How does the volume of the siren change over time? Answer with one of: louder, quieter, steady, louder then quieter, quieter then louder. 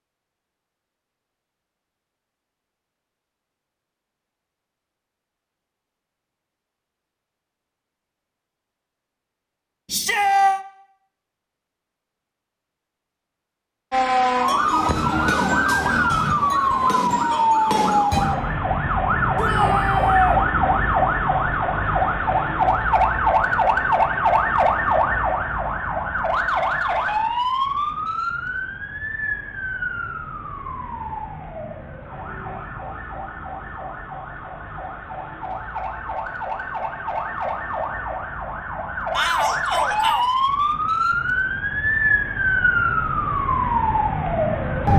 quieter then louder.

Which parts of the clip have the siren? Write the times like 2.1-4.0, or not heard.
13.9-44.9.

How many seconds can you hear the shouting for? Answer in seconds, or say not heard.
3 s.